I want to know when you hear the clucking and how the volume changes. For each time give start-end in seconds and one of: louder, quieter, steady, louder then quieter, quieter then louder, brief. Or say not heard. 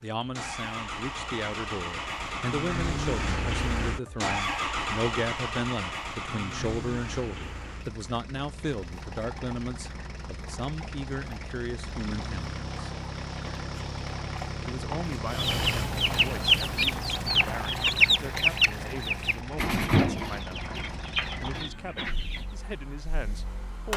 15.3-22.5 quieter.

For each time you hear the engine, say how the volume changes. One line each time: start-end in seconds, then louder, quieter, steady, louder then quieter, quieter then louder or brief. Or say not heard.
0.0-23.9 quieter.